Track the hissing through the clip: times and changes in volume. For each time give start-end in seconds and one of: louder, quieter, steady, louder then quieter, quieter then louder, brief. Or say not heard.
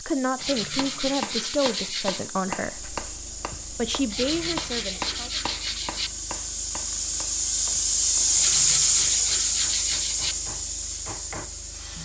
0.0-11.9 louder then quieter.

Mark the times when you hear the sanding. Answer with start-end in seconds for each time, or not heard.
0.3-2.2, 4.1-6.1, 8.3-10.3.